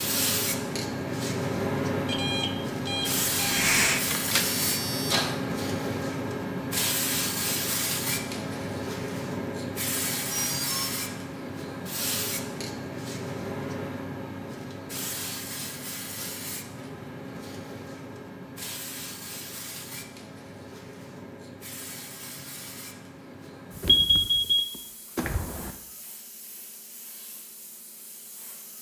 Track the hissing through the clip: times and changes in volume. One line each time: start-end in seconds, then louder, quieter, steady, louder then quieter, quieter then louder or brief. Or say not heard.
0.0-28.7 quieter.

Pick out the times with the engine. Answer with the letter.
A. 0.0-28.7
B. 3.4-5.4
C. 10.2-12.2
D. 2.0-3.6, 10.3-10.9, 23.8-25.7
B.